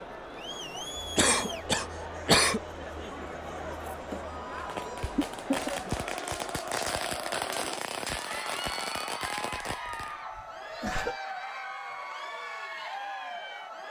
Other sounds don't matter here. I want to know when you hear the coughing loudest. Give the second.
2 s.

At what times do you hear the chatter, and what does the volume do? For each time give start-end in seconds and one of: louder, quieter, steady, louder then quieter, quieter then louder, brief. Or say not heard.
0.0-13.8 steady.